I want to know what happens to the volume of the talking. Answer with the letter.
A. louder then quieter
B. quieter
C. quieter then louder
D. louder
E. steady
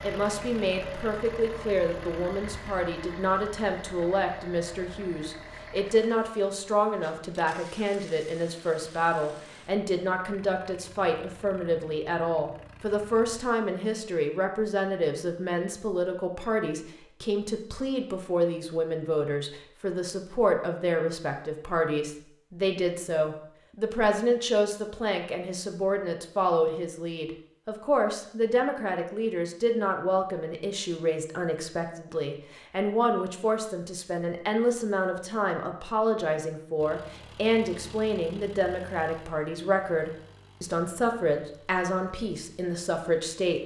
E.